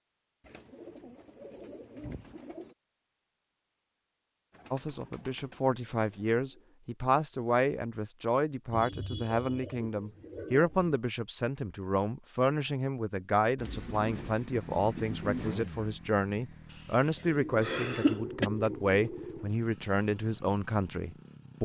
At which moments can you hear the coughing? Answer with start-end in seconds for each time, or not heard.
16.7-18.5.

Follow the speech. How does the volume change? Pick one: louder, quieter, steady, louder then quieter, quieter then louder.
steady.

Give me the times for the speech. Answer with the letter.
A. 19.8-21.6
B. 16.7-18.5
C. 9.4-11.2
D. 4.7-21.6
D.